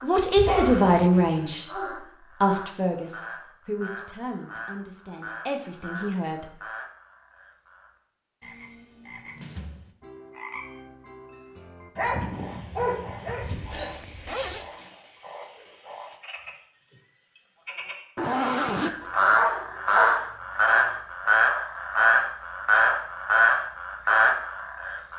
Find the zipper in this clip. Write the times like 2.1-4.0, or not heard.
0.3-1.1, 13.4-14.7, 18.1-19.4.